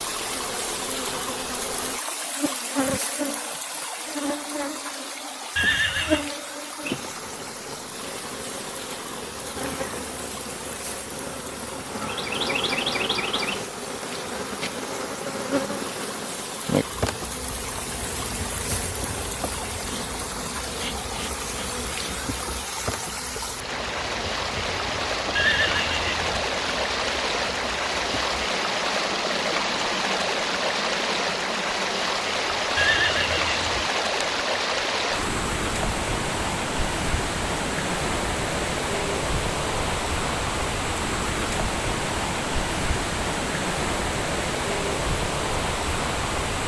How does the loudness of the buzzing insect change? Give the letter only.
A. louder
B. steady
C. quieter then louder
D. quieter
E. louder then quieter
D.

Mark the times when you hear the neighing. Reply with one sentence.
You can hear the neighing from 5.5 to 6.3 s, from 25.4 to 26.4 s and from 32.8 to 33.9 s.